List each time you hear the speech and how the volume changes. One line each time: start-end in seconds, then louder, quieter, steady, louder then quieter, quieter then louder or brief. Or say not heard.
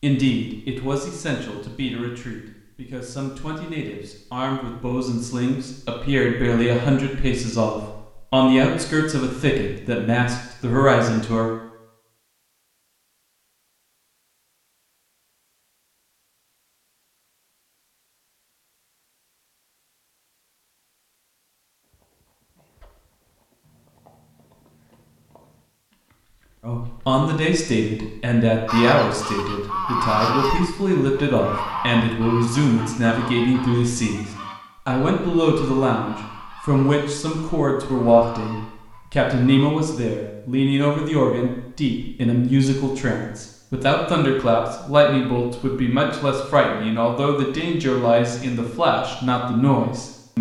0.0-11.5 louder
26.6-50.3 steady.